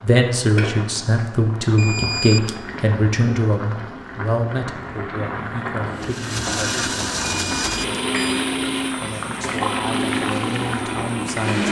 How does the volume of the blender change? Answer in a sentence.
The volume of the blender goes down.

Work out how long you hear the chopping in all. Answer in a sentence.
The chopping can't be heard in this clip.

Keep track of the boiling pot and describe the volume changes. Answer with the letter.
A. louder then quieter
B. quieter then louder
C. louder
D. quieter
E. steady
C.